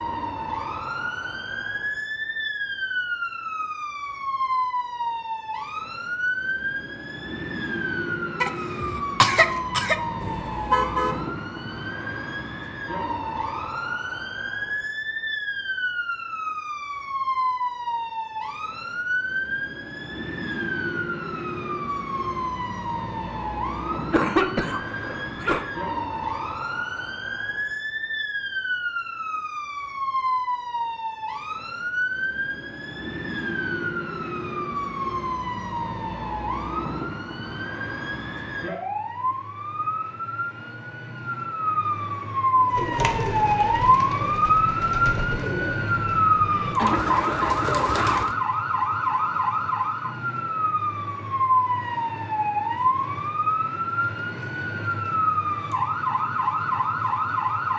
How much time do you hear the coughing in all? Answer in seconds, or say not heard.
5 s.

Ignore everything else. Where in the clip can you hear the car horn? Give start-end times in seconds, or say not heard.
10.2-11.2.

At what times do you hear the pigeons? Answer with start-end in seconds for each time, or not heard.
42.5-48.4.